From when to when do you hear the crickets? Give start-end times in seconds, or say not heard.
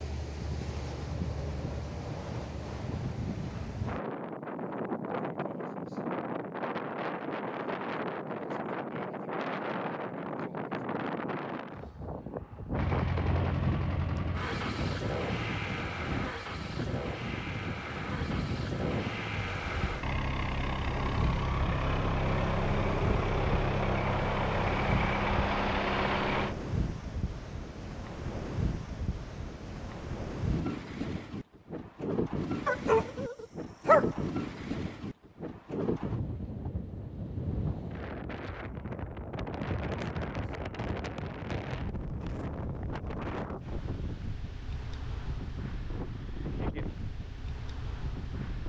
not heard.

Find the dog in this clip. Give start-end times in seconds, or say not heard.
32.6-34.1.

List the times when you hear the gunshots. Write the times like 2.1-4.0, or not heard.
not heard.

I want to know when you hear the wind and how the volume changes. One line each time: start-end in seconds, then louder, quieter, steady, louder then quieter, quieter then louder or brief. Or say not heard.
0.0-48.6 steady.